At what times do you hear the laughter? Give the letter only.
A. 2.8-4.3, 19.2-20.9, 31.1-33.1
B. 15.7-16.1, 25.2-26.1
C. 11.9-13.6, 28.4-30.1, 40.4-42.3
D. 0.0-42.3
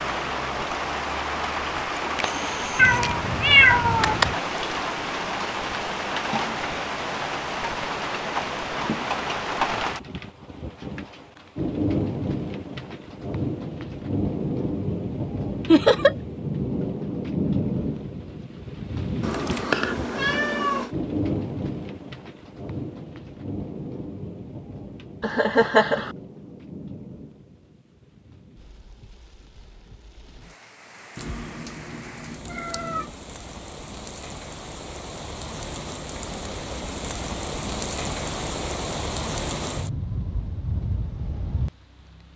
B.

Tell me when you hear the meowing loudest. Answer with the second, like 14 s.
4 s.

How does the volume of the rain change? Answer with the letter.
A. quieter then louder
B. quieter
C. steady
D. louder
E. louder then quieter
A.